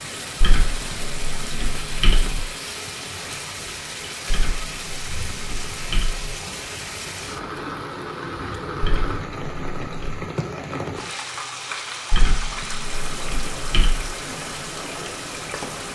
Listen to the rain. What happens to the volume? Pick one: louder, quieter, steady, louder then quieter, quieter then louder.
steady.